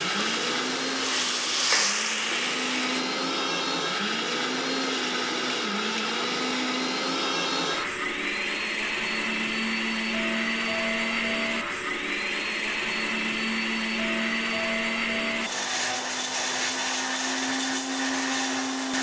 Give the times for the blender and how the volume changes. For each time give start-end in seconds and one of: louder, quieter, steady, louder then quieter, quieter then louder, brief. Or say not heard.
0.0-18.9 steady.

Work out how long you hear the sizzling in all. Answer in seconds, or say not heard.
3 s.